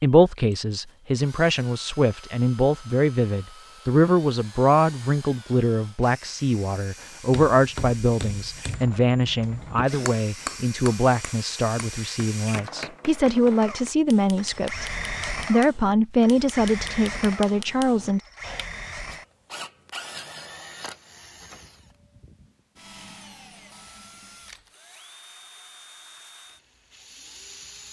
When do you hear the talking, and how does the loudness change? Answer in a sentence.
The talking can be heard from 0.0 to 18.2 s, at a steady volume.